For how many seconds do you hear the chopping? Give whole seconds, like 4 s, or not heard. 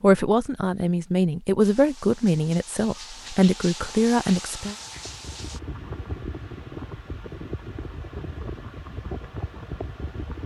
not heard.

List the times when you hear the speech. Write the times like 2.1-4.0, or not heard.
0.0-4.8.